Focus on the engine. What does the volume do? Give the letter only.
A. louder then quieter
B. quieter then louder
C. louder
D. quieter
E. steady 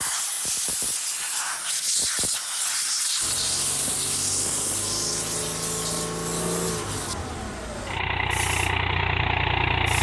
C.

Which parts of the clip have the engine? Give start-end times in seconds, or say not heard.
3.2-9.9.